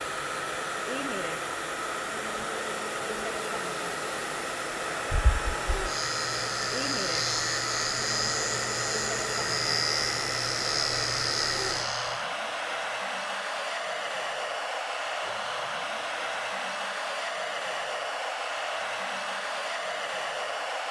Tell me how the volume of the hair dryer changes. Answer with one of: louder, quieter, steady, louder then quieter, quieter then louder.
steady.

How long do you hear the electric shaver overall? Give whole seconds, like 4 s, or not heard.
7 s.